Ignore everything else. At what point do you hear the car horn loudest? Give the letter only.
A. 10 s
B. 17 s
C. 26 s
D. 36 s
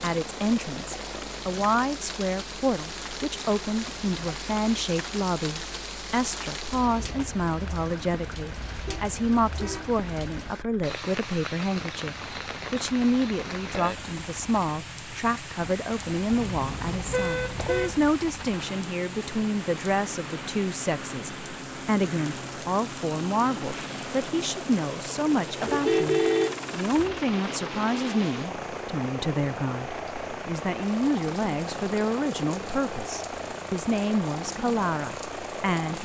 C.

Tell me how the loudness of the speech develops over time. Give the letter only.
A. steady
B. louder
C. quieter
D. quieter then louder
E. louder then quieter
A.